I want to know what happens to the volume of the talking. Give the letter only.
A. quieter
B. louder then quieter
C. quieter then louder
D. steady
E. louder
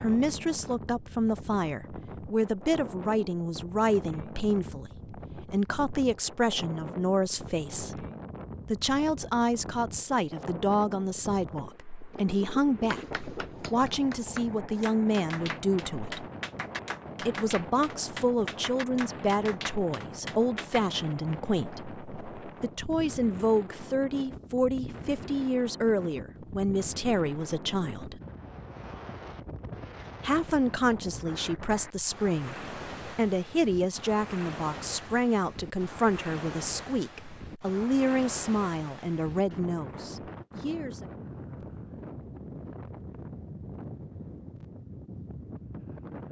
D.